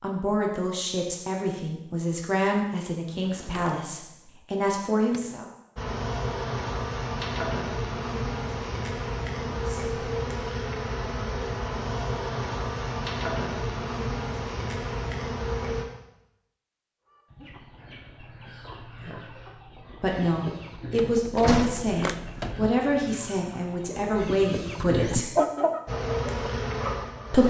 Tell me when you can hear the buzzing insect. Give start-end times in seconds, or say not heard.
5.8-15.8, 25.9-27.4.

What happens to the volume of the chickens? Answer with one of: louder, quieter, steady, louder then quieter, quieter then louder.
louder.